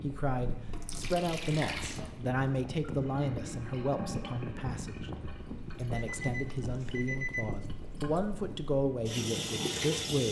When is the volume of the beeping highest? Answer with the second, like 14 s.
7 s.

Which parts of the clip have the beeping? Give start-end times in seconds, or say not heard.
5.8-7.5.